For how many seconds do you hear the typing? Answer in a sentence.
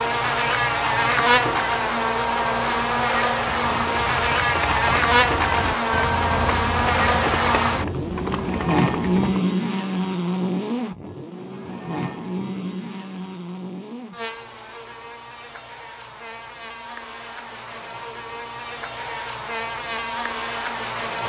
You can hear the typing for 6 seconds altogether.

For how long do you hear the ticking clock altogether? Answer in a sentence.
The ticking clock can't be heard in this clip.